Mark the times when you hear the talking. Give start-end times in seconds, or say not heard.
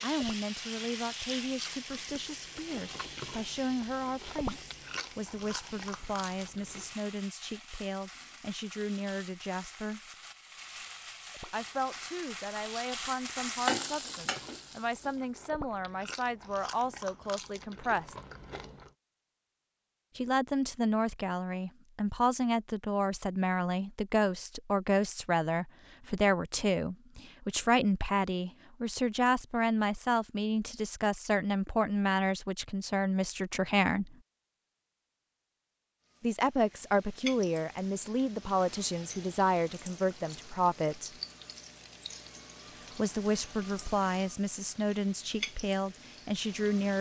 0.0-10.0, 11.5-18.1, 20.1-34.1, 36.2-41.1, 43.0-46.9.